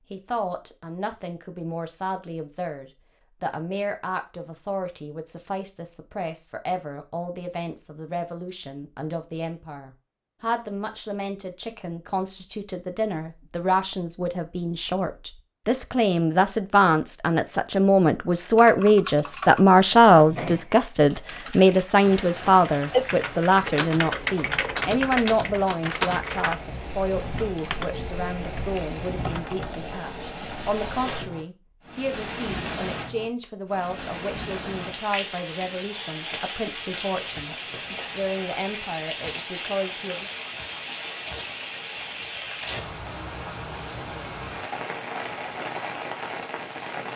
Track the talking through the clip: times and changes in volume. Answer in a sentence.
The talking can be heard from 0.1 to 40.3 s, getting louder then quieter.